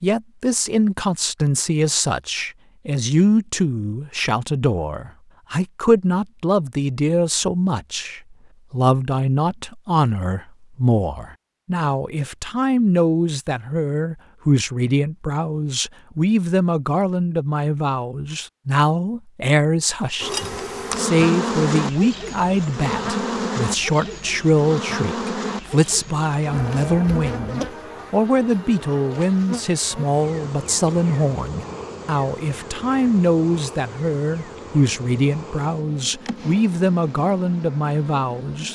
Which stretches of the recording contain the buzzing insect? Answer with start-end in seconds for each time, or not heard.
20.2-38.6.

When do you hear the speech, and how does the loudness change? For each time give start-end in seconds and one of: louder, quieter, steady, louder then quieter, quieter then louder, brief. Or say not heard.
0.0-38.6 steady.